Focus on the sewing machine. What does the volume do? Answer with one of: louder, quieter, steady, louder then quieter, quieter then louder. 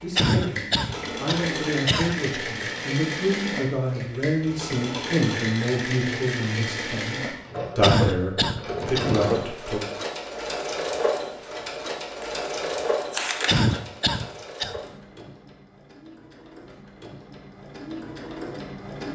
quieter.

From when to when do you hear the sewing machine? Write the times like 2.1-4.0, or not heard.
0.0-19.1.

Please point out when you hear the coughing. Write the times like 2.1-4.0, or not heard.
0.1-2.4, 7.8-9.2, 13.4-14.8.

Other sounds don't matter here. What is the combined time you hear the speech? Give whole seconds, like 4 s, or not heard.
10 s.